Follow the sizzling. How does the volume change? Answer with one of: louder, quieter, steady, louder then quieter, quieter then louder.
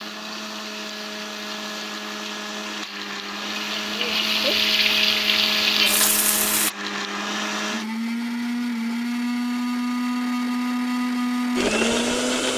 louder.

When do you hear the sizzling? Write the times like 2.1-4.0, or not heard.
0.0-6.7.